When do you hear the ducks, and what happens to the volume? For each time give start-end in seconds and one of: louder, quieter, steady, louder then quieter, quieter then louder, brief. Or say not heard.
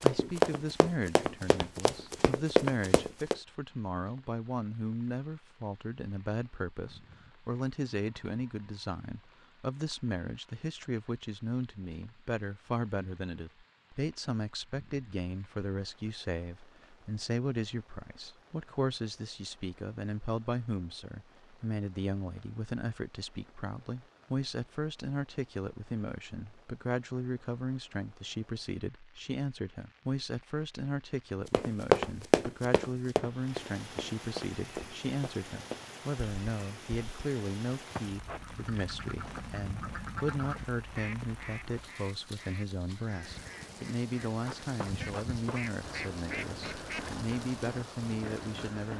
38.3-47.3 quieter then louder.